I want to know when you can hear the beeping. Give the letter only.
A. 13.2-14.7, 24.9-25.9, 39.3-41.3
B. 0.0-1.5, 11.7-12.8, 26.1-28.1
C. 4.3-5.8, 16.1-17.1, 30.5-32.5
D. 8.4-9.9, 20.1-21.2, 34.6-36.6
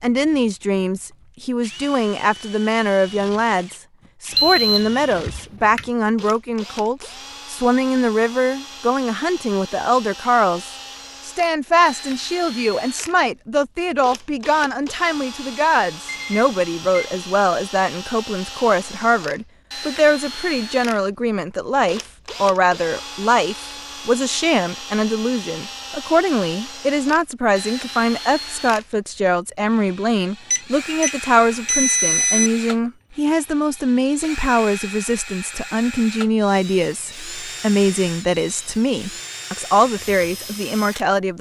C.